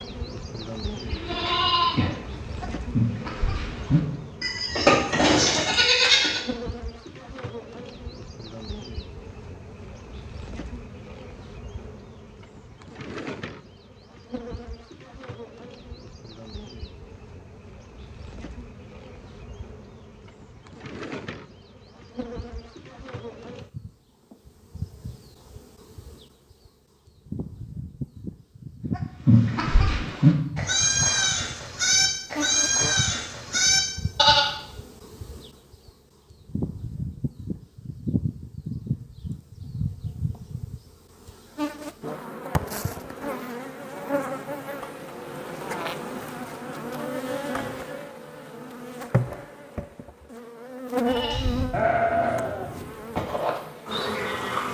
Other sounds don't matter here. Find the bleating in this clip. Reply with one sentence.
The bleating can be heard from 1.0 to 6.4 s, from 28.9 to 34.5 s and from 51.0 to 54.7 s.